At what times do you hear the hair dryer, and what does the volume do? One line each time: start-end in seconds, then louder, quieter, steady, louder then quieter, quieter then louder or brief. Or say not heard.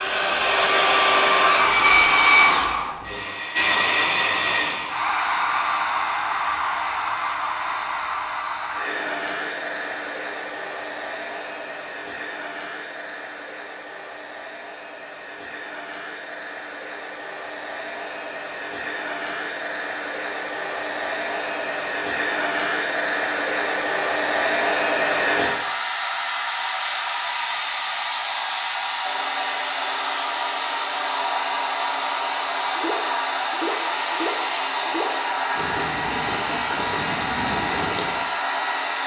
0.0-39.0 quieter then louder.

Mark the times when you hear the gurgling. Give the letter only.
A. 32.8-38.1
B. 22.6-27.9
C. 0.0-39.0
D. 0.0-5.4
A.